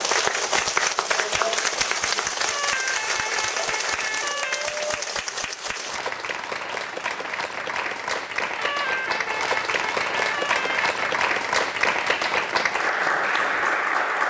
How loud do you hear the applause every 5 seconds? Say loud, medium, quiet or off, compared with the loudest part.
loud, medium, loud.